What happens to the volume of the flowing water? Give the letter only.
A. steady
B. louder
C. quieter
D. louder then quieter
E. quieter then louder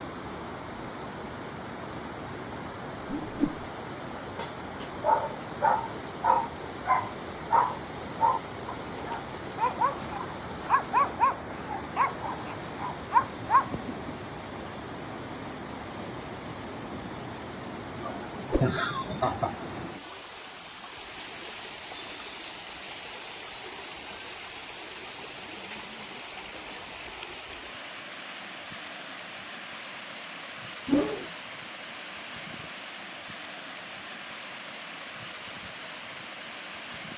A.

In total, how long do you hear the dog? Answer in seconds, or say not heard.
10 s.